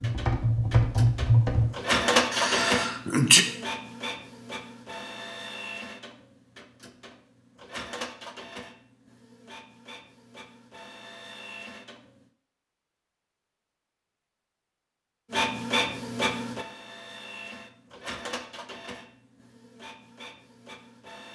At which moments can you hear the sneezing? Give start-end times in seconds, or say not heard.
2.3-3.5.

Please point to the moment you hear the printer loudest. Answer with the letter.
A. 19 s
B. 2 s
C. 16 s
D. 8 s
B.